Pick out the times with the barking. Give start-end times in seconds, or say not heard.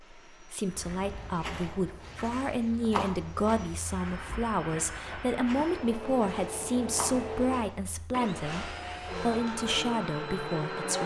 not heard.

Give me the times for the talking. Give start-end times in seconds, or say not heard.
0.1-11.0.